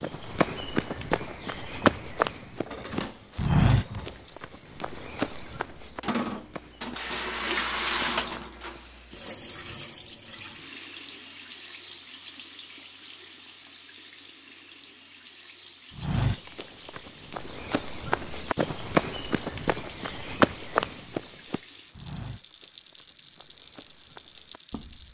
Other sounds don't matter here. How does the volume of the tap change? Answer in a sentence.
The volume of the tap goes up, then down.